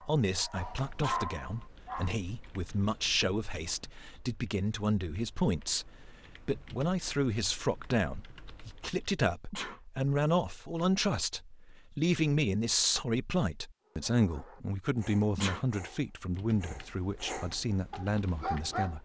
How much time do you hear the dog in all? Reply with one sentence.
The dog can be heard for 7 seconds in total.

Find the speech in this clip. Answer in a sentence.
The speech can be heard from 0.0 to 18.9 s.